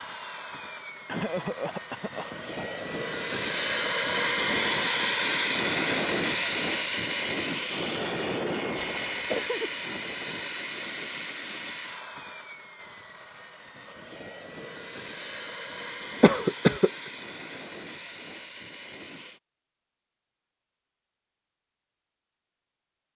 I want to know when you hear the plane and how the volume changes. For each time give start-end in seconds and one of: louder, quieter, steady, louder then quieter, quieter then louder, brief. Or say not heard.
0.0-19.4 louder then quieter.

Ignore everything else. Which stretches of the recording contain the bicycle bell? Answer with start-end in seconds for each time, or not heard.
not heard.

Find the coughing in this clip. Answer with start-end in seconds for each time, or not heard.
1.1-2.8, 9.3-9.8, 16.2-16.9.